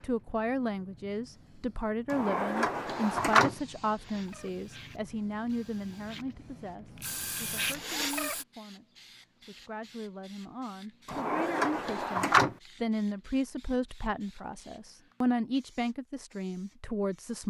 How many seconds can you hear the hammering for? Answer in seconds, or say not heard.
not heard.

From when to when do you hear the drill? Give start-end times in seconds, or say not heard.
2.9-8.4.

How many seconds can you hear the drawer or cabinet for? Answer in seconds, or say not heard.
3 s.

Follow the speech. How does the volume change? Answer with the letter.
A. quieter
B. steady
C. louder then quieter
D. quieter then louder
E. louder
D.